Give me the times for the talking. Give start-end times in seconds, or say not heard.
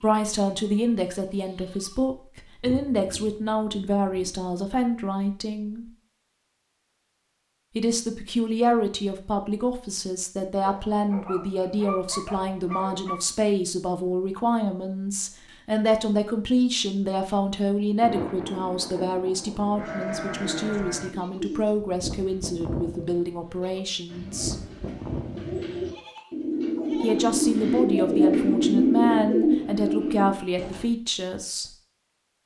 0.0-5.9, 7.8-24.6, 27.0-31.7.